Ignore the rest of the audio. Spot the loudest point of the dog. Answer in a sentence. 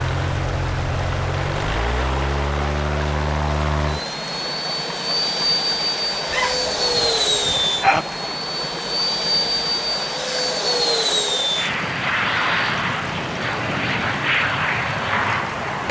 The loudest moment of the dog is at 8 seconds.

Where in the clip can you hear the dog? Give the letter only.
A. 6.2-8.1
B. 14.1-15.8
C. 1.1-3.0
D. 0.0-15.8
A.